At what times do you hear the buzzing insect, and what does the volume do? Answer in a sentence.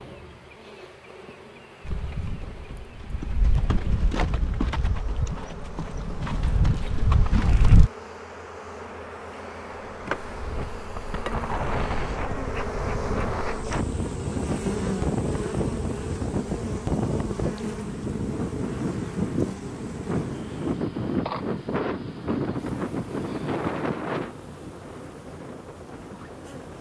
You can hear the buzzing insect from 0.0 to 26.7 s, getting louder then quieter.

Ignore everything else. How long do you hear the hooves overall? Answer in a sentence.
You can hear the hooves for 6 seconds altogether.